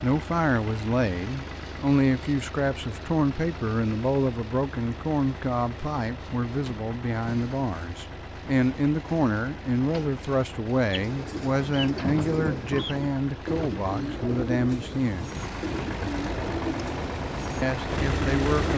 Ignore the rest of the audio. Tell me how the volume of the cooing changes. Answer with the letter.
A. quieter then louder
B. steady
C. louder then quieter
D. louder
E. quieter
B.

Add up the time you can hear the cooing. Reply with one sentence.
You can hear the cooing for 8 seconds altogether.